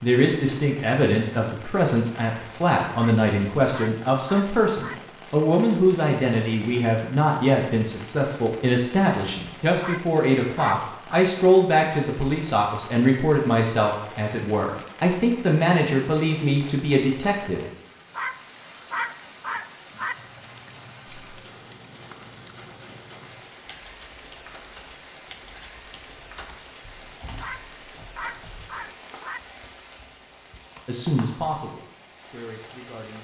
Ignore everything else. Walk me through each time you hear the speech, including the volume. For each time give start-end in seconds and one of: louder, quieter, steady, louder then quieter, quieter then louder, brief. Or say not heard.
0.0-17.6 steady
30.9-33.1 brief.